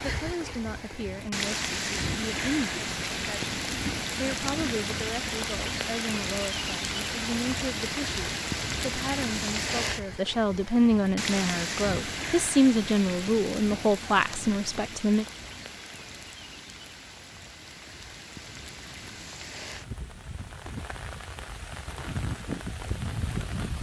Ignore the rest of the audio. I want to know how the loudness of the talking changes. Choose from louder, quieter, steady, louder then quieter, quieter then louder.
louder.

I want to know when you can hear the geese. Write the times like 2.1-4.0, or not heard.
not heard.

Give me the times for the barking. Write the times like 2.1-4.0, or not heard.
not heard.